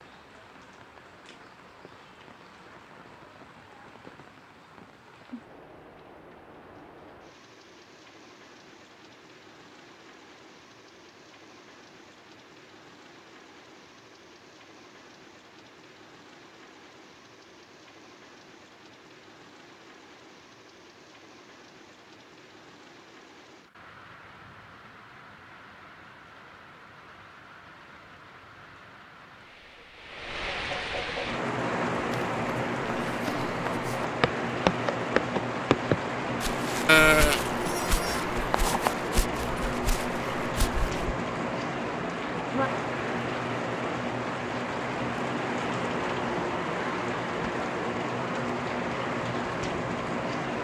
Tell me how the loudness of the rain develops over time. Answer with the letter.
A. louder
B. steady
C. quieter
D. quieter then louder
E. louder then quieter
A.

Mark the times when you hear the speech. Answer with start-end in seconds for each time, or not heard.
not heard.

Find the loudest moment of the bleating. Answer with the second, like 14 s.
37 s.